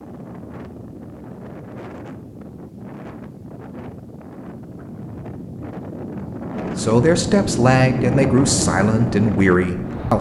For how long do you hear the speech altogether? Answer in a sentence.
The speech can be heard for 3 seconds in total.